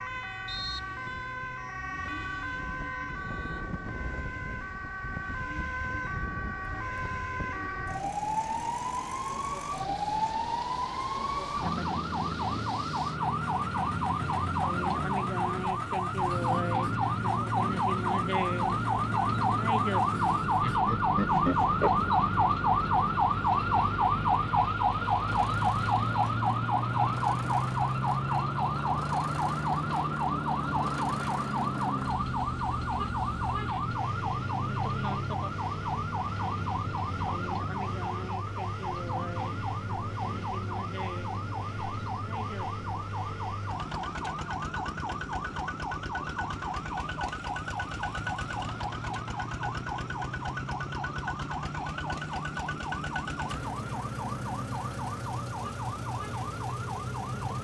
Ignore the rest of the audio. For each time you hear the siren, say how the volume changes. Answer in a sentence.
You can hear the siren from 0.0 to 57.5 s, getting louder then quieter.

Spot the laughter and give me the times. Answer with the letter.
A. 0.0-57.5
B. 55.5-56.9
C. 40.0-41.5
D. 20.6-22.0
D.